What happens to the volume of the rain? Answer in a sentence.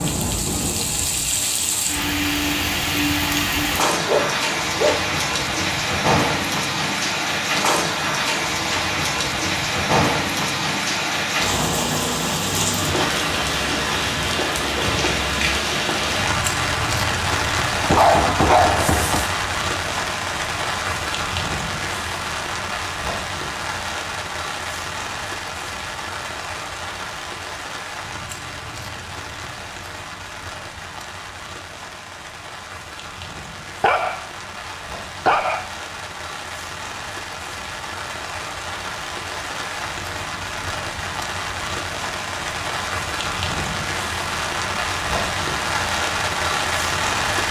The volume of the rain goes down, then up.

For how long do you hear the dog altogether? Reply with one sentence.
The dog can be heard for 4 seconds in total.